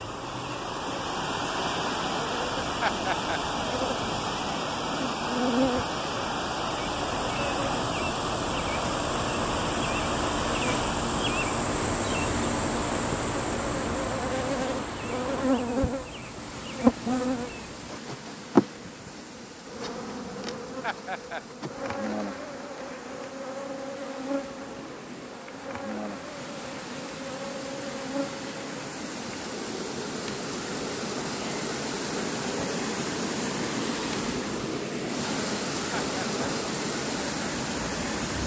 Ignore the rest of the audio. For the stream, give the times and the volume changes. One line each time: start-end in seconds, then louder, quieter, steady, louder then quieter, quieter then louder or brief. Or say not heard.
0.0-38.4 quieter then louder.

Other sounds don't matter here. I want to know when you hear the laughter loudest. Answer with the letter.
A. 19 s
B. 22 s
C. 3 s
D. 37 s
C.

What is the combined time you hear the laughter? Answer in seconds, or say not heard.
2 s.